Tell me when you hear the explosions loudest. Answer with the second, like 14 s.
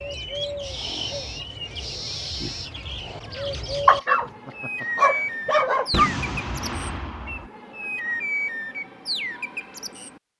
6 s.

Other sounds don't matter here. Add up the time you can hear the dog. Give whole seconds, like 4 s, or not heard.
2 s.